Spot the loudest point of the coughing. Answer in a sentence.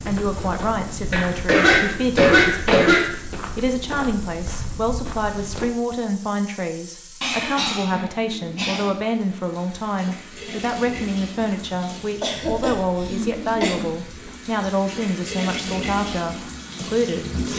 The volume of the coughing peaks at 2 seconds.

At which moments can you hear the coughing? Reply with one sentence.
The coughing can be heard from 1.1 to 3.1 s, from 7.2 to 8.9 s and from 12.2 to 13.8 s.